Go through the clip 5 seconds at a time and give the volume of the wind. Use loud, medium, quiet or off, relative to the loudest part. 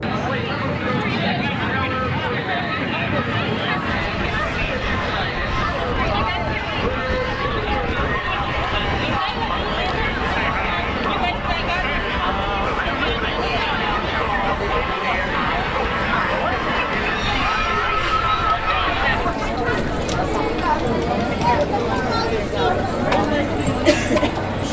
loud, loud, loud, medium, medium.